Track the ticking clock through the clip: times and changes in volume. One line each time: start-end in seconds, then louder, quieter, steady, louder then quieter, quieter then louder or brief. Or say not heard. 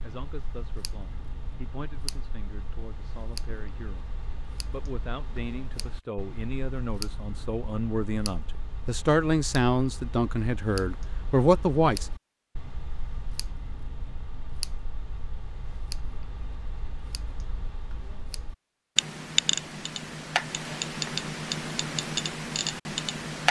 0.0-23.4 louder.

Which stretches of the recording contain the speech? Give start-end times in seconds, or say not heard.
0.0-4.1, 4.7-12.1.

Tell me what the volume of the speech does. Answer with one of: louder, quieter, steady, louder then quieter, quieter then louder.
louder.